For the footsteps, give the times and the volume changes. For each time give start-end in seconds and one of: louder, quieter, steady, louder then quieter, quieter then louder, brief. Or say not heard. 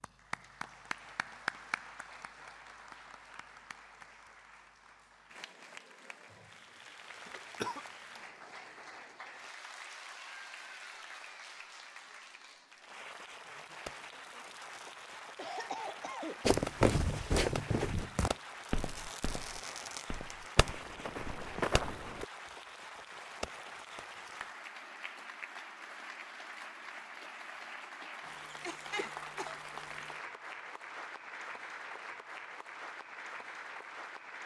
16.4-22.2 quieter then louder.